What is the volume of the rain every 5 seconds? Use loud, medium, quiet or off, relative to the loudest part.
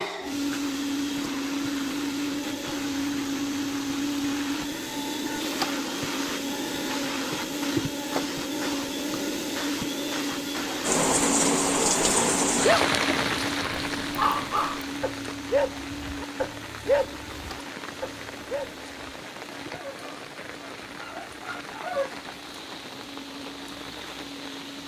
off, off, loud, quiet, quiet.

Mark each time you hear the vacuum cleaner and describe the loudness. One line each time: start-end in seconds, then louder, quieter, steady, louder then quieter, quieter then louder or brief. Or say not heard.
0.0-24.8 quieter.